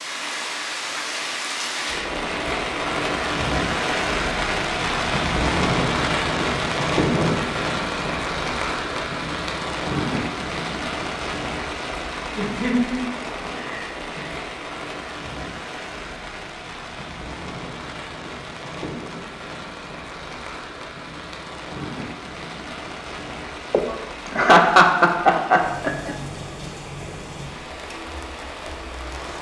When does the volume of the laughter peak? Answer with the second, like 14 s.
25 s.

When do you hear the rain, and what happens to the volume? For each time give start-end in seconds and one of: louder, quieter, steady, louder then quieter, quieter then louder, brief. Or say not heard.
0.0-29.3 quieter.